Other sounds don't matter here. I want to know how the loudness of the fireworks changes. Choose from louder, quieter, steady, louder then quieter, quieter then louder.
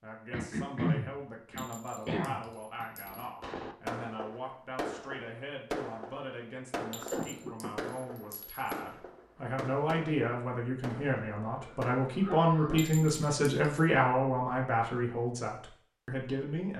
quieter.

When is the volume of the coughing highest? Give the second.
1 s.